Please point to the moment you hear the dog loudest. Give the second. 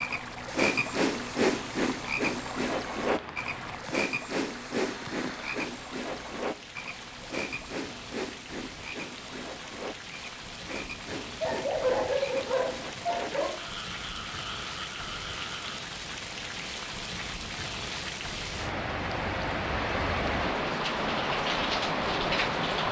12 s.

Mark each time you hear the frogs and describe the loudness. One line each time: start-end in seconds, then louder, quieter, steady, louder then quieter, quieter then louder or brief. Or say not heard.
0.0-15.8 quieter.